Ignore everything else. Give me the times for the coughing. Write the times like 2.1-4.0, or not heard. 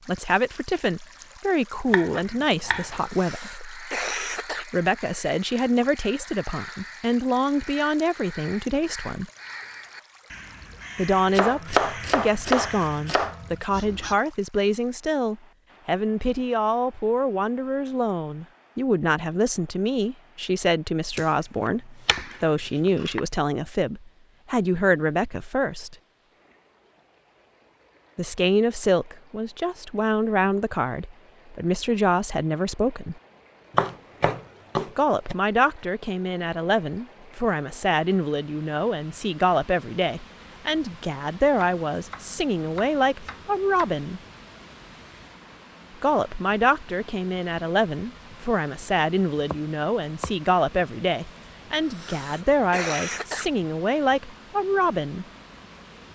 3.0-4.7, 51.8-53.5.